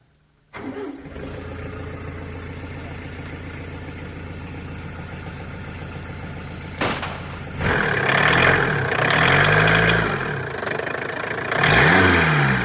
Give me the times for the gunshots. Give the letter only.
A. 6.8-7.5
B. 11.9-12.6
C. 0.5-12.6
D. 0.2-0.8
A.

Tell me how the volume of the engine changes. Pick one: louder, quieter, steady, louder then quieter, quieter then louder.
louder.